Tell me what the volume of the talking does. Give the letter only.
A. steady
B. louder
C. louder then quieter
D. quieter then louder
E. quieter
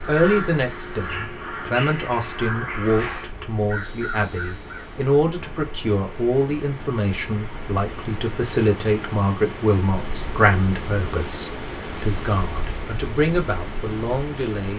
A.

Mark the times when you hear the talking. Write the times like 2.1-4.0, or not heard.
0.0-14.7.